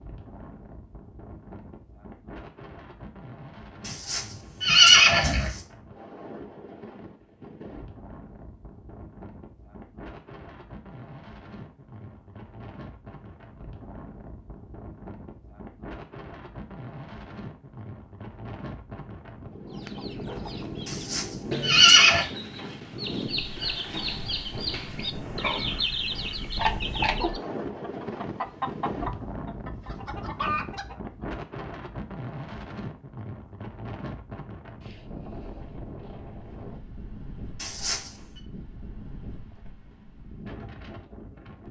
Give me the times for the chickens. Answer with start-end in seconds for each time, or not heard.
19.6-31.6.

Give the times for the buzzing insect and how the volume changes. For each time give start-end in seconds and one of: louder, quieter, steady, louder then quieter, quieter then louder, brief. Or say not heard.
not heard.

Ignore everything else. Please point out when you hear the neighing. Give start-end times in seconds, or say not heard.
3.9-5.6, 20.9-22.2, 37.5-38.2.